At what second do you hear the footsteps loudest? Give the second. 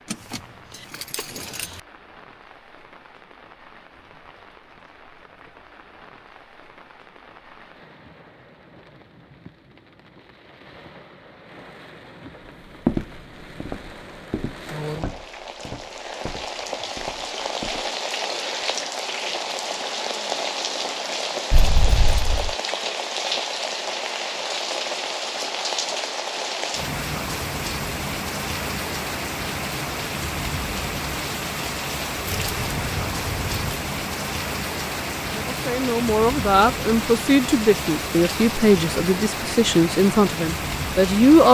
13 s.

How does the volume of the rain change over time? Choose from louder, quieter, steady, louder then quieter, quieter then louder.
louder.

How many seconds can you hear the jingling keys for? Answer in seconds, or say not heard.
4 s.